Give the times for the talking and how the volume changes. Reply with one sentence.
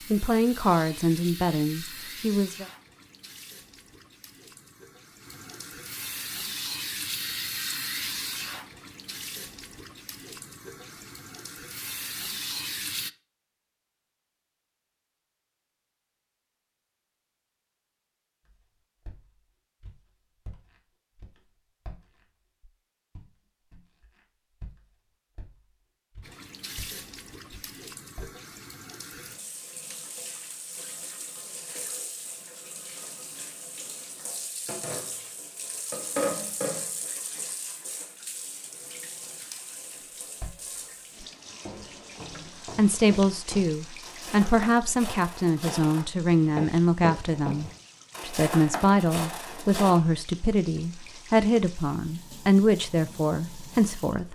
The talking can be heard briefly from 0.1 to 2.6 s; and from 42.8 to 54.2 s, at a steady volume.